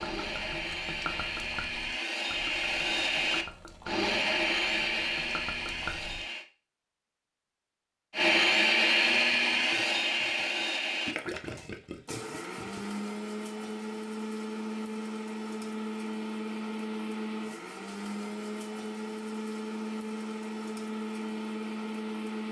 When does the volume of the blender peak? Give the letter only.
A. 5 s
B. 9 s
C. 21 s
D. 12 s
B.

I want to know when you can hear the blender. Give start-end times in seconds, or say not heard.
0.0-6.5, 8.1-22.4.